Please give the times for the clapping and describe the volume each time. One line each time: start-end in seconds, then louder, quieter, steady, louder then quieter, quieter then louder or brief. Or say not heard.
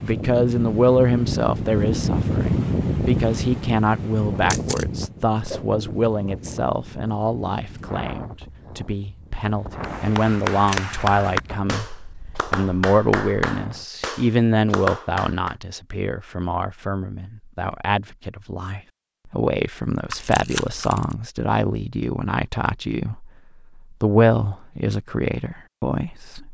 9.8-15.6 steady.